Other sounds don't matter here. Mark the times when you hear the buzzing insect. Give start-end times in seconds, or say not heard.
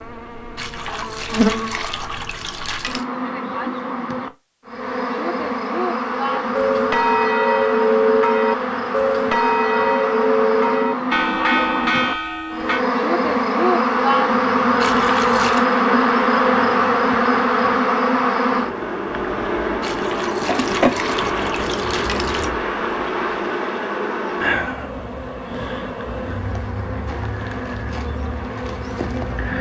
0.0-29.5.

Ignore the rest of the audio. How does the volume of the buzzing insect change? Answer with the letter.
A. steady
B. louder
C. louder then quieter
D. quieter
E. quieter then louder
C.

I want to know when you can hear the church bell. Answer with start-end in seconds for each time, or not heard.
6.3-12.8.